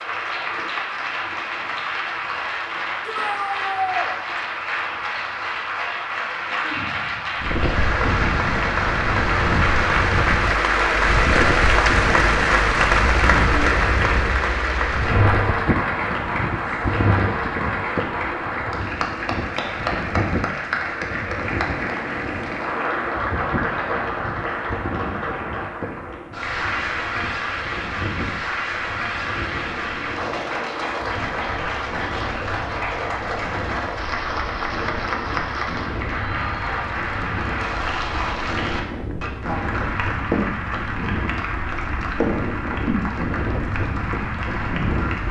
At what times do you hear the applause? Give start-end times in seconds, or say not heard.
0.0-45.2.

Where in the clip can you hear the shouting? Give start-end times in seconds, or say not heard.
3.0-4.1.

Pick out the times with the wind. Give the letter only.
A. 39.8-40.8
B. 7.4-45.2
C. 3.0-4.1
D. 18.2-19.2
B.